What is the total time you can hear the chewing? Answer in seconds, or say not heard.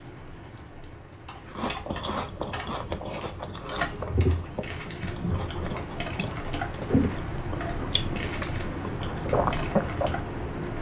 9 s.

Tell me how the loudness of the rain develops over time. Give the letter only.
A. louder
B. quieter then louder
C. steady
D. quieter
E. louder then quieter
A.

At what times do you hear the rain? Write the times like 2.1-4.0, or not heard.
0.0-10.7.